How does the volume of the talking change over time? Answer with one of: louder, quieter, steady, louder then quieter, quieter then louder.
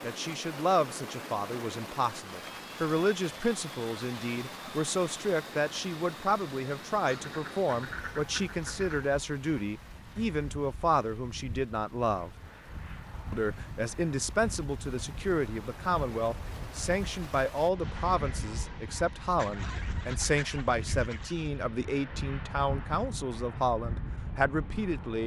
steady.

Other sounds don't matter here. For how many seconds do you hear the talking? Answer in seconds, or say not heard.
24 s.